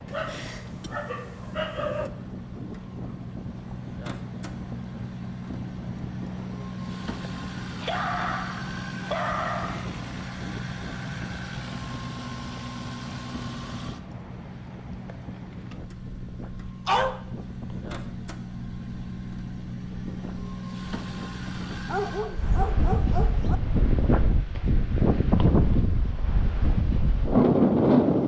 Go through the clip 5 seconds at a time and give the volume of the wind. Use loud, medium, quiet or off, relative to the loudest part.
quiet, quiet, quiet, quiet, medium, loud.